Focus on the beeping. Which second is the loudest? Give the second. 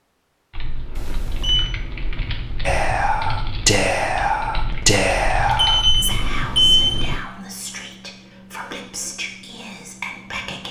7 s.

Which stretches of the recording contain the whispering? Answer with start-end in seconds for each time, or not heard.
2.6-10.6.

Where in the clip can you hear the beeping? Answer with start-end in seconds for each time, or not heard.
0.9-1.6, 5.5-7.0.